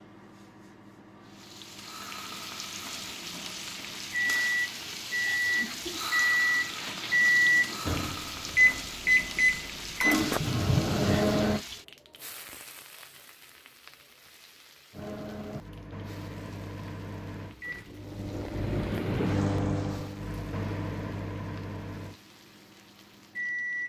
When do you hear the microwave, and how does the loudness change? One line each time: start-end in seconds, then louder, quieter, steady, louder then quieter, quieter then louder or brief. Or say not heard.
0.0-11.6 louder
14.9-23.8 louder then quieter.